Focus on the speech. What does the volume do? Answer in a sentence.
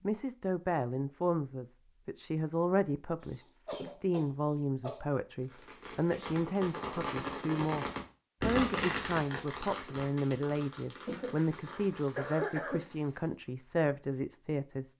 The loudness of the speech stays about the same.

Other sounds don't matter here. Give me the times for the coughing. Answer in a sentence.
You can hear the coughing from 3.2 to 5.0 s and from 11.1 to 12.8 s.